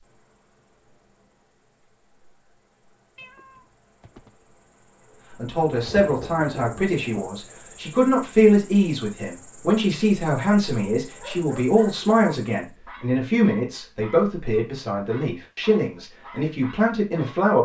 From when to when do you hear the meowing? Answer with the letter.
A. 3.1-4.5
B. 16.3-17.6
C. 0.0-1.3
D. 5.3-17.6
A.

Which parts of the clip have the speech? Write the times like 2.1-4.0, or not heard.
5.3-17.6.